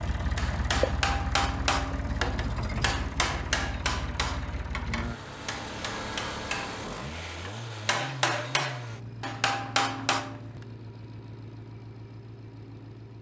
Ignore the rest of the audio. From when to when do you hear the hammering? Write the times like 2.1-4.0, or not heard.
0.3-10.4.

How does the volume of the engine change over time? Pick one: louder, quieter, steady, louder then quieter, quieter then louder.
quieter.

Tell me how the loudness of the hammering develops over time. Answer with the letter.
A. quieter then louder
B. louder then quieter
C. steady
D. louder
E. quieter
A.